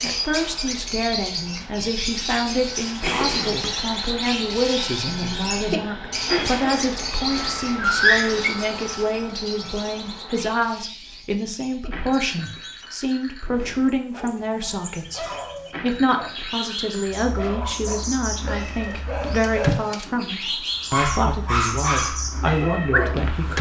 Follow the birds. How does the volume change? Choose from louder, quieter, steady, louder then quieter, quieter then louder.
quieter then louder.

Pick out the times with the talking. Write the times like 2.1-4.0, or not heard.
0.0-15.2, 15.8-23.5.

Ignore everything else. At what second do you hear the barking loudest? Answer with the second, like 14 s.
8 s.